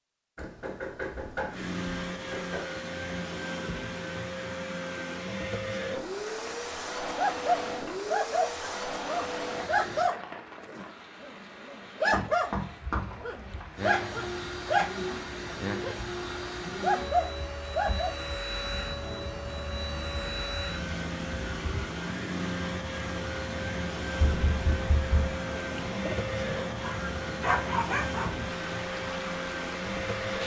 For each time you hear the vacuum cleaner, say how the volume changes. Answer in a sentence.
The vacuum cleaner can be heard from 1.5 to 10.1 s, at a steady volume; and from 13.8 to 30.4 s, at a steady volume.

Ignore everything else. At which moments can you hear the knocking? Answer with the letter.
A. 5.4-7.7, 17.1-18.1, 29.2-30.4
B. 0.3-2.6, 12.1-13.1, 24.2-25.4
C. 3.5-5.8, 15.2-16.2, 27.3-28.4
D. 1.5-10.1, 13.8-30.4
B.